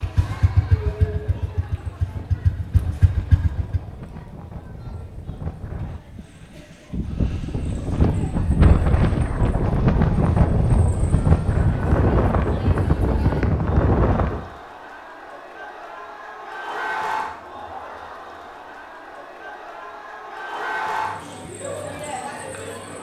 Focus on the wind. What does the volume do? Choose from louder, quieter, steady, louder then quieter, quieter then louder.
louder.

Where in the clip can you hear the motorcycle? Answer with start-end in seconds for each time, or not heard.
0.0-3.8.